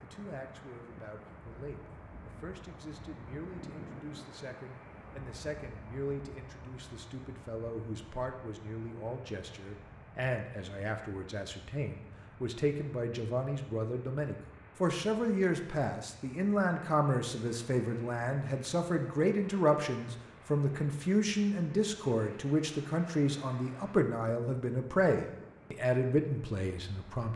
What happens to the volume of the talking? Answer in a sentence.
The loudness of the talking goes up.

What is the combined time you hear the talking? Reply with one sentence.
The talking can be heard for 27 seconds in total.